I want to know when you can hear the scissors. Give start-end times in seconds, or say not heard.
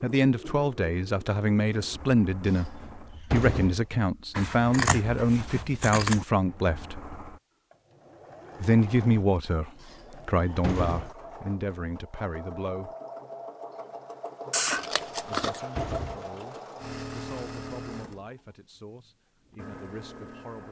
4.3-6.2, 14.5-15.6.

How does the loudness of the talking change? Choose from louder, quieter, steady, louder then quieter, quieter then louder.
quieter.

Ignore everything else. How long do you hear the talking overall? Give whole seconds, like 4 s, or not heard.
17 s.